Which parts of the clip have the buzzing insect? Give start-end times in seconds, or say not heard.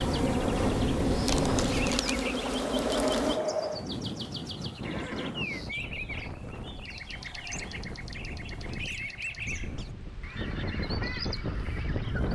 0.0-3.4.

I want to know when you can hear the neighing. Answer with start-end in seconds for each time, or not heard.
4.8-5.6.